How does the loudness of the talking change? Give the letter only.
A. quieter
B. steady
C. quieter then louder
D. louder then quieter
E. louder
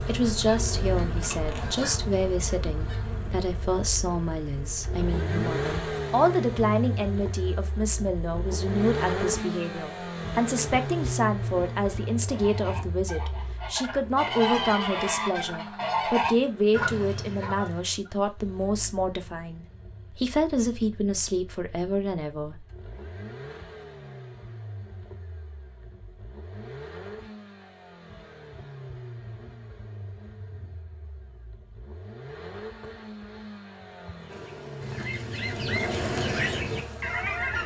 B.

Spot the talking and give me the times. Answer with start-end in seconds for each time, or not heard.
0.1-22.6.